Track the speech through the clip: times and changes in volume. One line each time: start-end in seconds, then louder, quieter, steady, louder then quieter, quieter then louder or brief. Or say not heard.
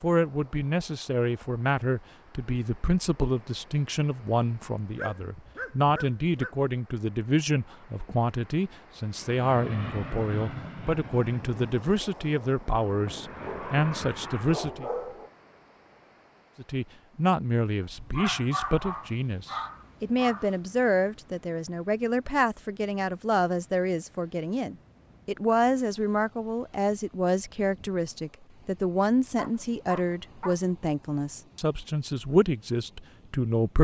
0.0-14.8 steady
16.6-33.7 steady.